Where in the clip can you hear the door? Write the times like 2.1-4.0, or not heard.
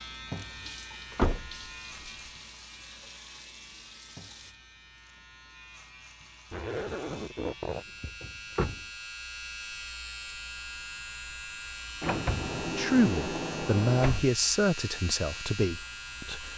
1.1-2.1, 8.0-8.8, 12.0-14.3.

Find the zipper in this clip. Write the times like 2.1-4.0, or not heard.
6.5-7.8.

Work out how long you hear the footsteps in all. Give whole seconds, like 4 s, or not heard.
not heard.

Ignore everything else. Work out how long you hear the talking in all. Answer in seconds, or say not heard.
4 s.